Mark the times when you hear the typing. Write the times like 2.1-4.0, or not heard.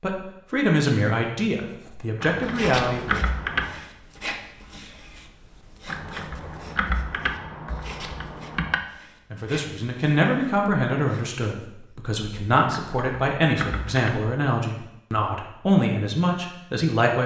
2.2-3.8, 5.8-8.8, 12.7-14.2.